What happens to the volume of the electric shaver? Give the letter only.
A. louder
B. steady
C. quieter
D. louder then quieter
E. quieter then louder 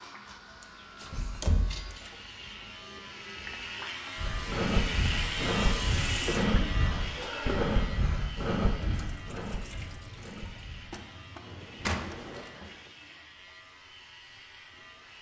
D.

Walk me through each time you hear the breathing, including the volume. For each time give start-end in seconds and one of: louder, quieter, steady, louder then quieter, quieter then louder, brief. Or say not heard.
4.2-12.5 quieter.